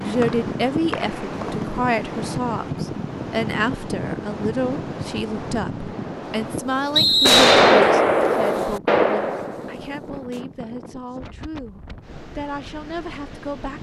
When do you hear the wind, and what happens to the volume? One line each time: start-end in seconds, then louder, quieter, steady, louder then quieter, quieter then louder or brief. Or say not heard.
0.0-13.7 quieter.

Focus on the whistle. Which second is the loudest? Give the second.
7 s.